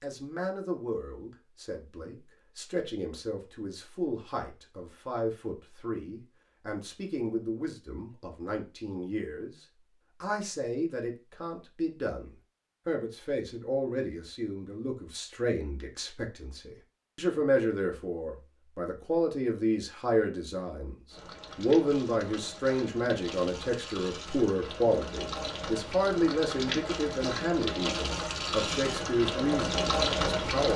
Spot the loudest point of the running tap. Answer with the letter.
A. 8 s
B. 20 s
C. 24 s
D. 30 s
D.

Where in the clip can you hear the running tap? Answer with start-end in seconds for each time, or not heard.
21.1-30.7.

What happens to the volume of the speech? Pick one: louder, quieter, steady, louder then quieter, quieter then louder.
louder.